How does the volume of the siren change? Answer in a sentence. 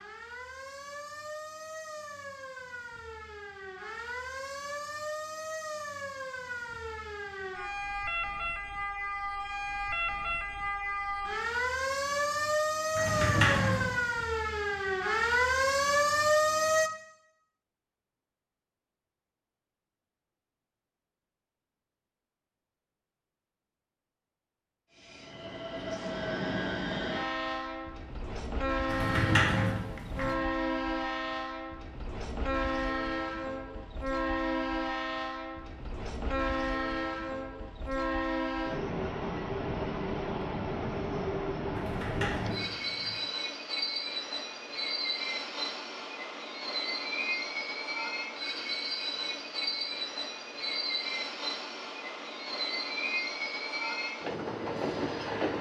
The loudness of the siren goes up.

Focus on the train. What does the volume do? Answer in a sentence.
The volume of the train stays about the same.